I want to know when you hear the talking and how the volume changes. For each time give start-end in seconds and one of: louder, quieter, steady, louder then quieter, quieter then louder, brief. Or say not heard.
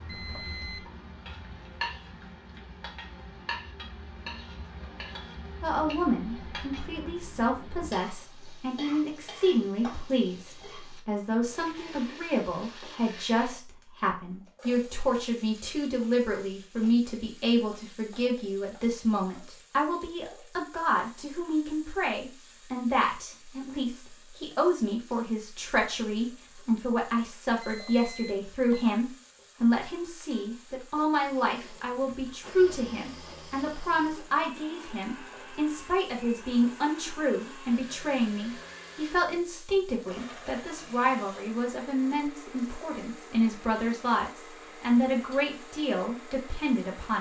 5.6-47.1 steady.